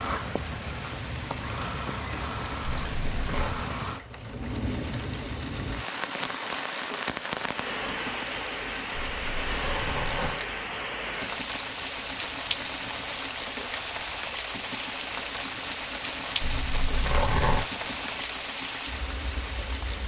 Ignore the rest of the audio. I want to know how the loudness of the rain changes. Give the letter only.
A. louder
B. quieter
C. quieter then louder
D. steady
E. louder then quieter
D.